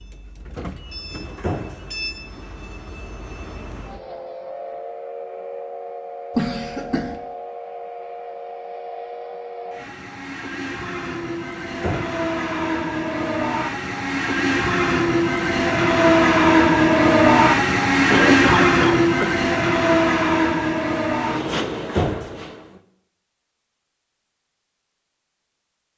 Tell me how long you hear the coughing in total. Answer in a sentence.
The coughing can be heard for 2 seconds in total.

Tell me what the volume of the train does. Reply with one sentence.
The loudness of the train goes up.